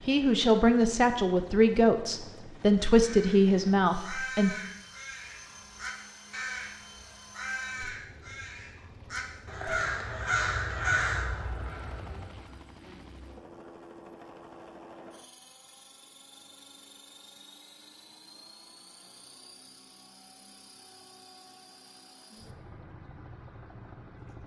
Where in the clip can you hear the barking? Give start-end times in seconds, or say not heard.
not heard.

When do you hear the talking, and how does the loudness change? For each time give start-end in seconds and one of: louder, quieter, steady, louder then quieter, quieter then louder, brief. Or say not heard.
0.1-4.5 quieter then louder.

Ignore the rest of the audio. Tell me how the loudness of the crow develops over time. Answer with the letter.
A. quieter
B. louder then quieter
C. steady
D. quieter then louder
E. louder
E.